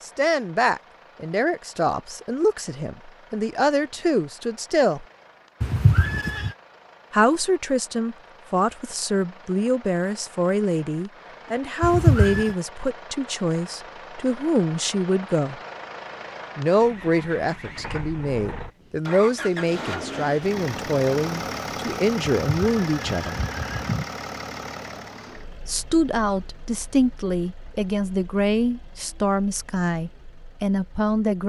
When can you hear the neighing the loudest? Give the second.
12 s.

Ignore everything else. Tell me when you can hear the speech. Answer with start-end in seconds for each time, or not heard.
0.0-5.0, 7.1-15.6, 16.6-23.4, 25.6-31.4.